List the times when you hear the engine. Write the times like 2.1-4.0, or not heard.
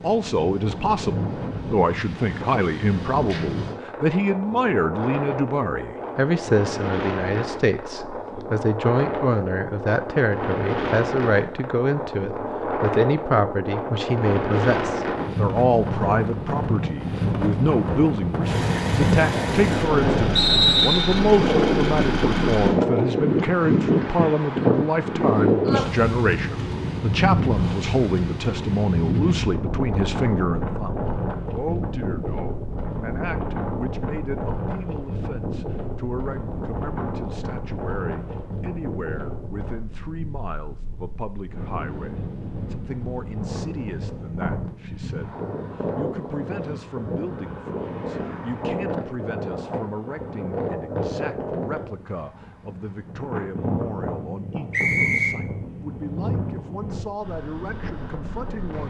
18.4-22.8.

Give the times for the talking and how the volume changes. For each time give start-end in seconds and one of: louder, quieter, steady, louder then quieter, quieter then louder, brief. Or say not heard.
0.0-58.8 quieter.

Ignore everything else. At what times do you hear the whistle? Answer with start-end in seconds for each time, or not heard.
20.4-21.2, 54.7-55.4.